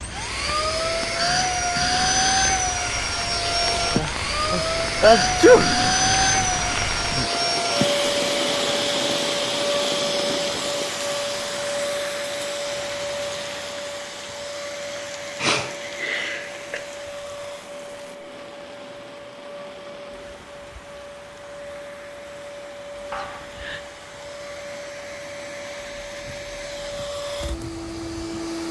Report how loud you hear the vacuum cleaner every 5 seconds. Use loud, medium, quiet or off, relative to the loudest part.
loud, loud, medium, quiet, quiet, medium.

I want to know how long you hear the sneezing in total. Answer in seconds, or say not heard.
4 s.